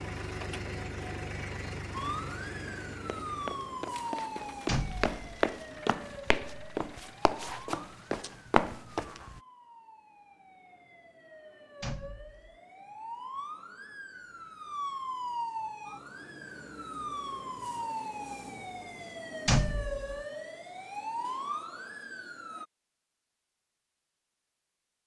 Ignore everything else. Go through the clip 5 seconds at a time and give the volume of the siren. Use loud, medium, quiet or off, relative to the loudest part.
loud, medium, medium, loud, loud.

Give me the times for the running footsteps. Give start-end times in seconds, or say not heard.
3.0-9.4.